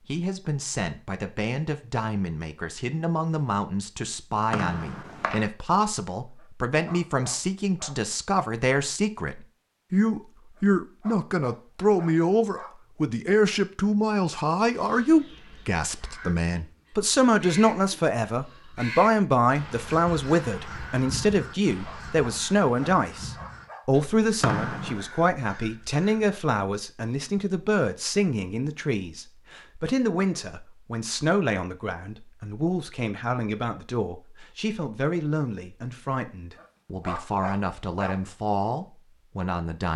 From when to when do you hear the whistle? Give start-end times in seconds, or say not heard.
4.5-5.5, 24.4-25.1.